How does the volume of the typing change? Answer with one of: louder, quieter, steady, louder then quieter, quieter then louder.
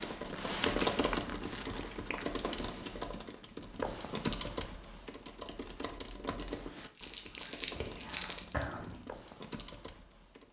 quieter.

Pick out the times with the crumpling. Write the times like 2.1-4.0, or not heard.
7.0-8.7.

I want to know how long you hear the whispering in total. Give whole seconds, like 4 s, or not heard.
2 s.